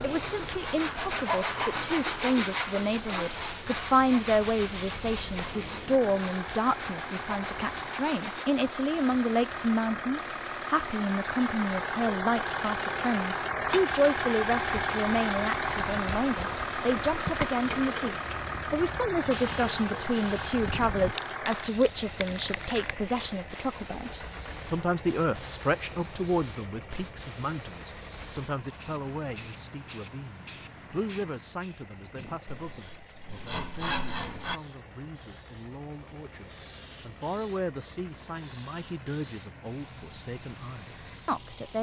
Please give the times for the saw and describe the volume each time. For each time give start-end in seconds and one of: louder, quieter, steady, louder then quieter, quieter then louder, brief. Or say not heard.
0.0-8.4 quieter
32.5-34.6 brief.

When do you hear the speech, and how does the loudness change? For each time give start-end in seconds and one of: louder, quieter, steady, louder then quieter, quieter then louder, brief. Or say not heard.
0.0-41.7 quieter.